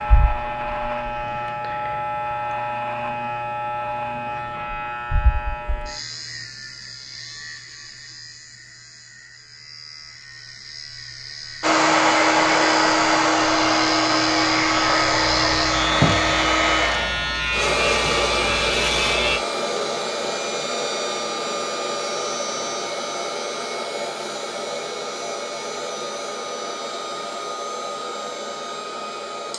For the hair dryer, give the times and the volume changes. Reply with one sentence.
The hair dryer can be heard from 11.6 to 29.5 s, getting quieter.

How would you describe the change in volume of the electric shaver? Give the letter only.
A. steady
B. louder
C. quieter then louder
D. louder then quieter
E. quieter
C.